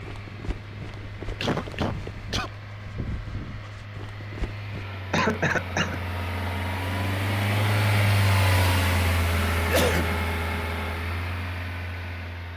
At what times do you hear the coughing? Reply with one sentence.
You can hear the coughing from 1.4 to 2.5 s, from 5.1 to 6.0 s and from 9.6 to 10.2 s.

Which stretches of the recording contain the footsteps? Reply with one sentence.
The footsteps can be heard from 0.0 to 4.9 s.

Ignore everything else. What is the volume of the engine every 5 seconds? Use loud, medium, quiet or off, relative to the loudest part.
quiet, loud, medium.